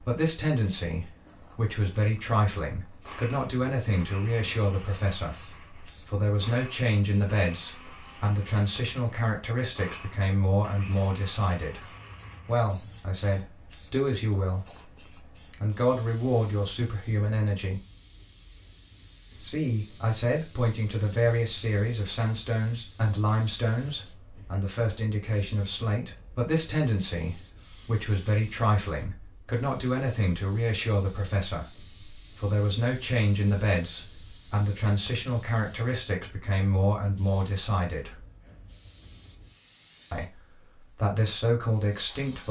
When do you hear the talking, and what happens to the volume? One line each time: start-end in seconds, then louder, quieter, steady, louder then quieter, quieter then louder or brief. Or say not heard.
0.0-17.8 steady
19.4-38.2 steady
40.1-42.4 brief.